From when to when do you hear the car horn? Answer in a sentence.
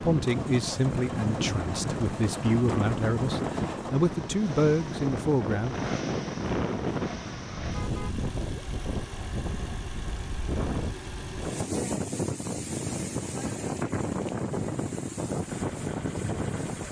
You can hear the car horn from 7.7 to 8.7 s.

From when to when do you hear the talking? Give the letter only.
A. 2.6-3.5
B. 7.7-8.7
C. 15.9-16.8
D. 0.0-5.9
D.